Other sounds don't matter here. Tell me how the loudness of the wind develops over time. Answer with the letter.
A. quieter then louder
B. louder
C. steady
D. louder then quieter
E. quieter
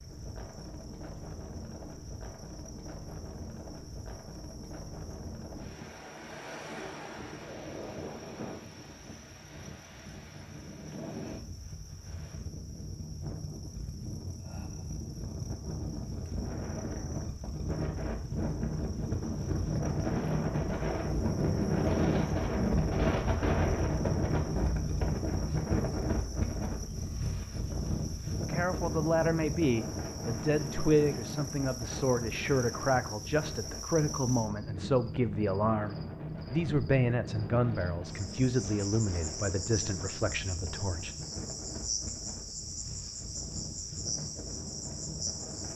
D.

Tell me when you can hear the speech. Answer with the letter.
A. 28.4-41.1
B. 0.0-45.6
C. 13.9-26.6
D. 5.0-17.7
A.